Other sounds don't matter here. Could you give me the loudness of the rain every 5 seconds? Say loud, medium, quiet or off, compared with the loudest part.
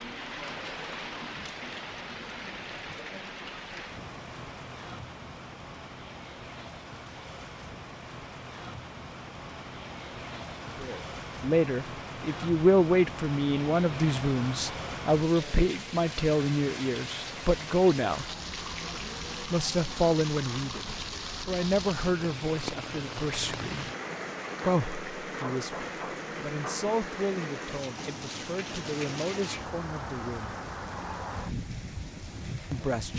loud, medium, loud, loud, loud, loud, loud.